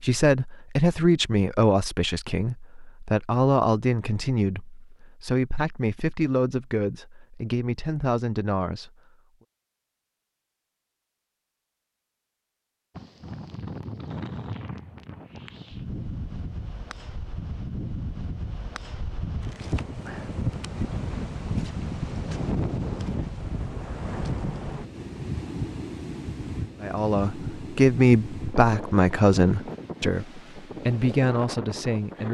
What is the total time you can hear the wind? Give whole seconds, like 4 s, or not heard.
19 s.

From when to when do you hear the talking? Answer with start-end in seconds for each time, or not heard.
0.0-8.9, 26.8-32.3.